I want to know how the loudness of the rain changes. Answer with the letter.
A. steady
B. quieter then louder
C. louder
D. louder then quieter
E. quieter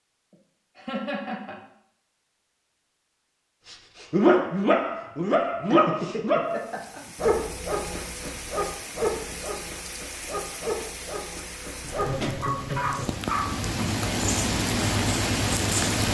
C.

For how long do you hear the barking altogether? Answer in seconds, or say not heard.
10 s.